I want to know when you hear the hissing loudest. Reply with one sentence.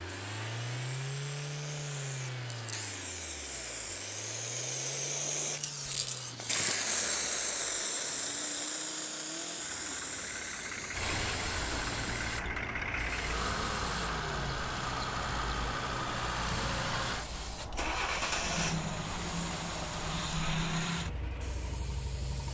The volume of the hissing peaks at 7 seconds.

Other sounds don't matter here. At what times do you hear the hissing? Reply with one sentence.
The hissing can be heard from 0.1 to 22.4 s.